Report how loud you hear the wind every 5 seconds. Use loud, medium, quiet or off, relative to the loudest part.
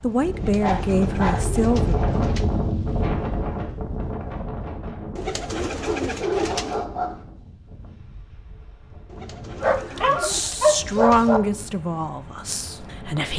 loud, quiet, quiet.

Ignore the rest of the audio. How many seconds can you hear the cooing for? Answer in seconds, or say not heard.
6 s.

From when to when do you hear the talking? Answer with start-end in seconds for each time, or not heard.
0.0-1.9, 9.9-13.3.